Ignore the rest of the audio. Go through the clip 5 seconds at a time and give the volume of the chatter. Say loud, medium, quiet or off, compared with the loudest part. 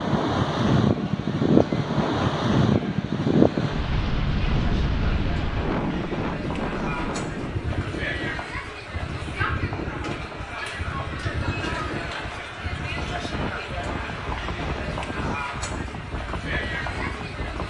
medium, loud, loud, loud.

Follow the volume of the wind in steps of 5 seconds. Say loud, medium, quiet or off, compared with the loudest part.
loud, medium, quiet, quiet.